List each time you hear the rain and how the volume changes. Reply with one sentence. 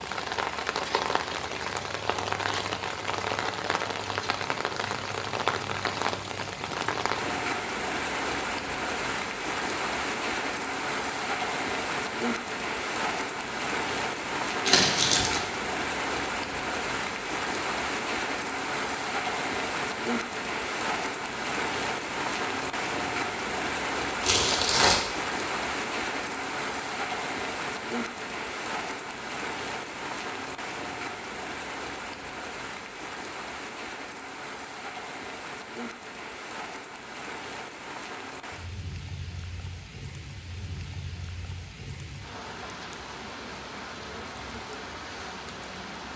You can hear the rain from 0.0 to 46.1 s, getting quieter.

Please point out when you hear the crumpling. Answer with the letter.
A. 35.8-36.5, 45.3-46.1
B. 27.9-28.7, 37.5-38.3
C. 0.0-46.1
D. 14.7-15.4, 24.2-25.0
D.